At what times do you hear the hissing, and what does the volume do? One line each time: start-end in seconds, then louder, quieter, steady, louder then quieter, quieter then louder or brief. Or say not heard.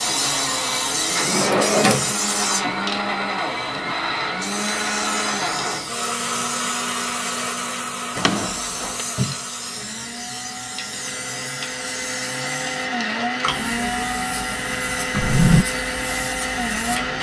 0.0-17.1 quieter.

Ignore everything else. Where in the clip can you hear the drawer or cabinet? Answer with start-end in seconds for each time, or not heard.
1.1-2.1, 8.2-9.1, 15.1-15.7.